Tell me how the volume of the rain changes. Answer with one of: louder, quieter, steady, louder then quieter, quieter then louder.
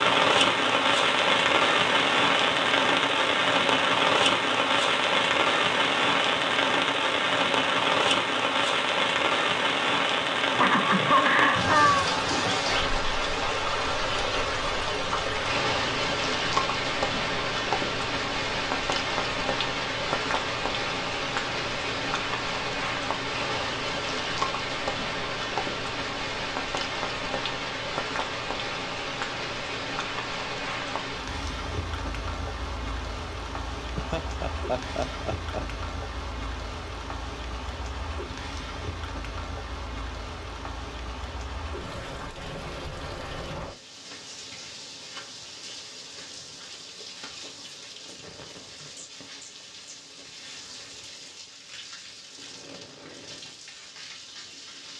quieter.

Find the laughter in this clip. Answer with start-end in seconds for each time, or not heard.
10.6-12.1, 34.0-35.6.